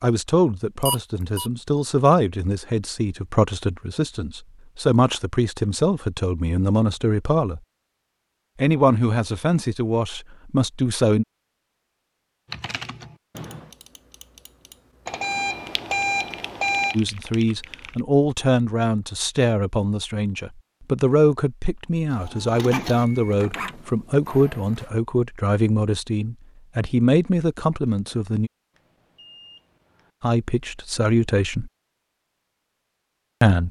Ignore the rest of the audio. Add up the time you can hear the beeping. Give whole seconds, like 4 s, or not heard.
4 s.